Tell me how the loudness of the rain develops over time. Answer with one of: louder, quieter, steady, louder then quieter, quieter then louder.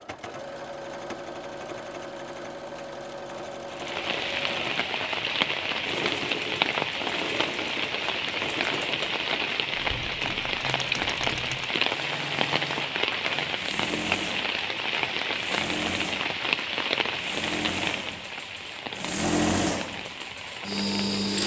quieter.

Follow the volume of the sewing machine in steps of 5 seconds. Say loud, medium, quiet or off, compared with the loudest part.
medium, medium, medium, loud, loud.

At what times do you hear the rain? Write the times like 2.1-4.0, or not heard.
3.7-21.4.